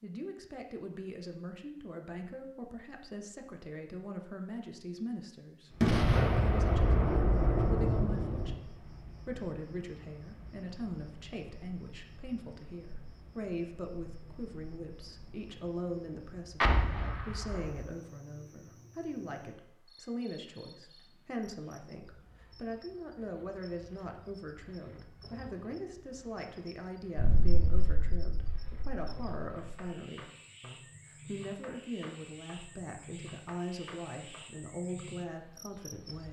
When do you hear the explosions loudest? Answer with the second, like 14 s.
6 s.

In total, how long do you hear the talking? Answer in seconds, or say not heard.
36 s.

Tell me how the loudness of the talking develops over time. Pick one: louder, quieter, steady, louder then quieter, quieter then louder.
steady.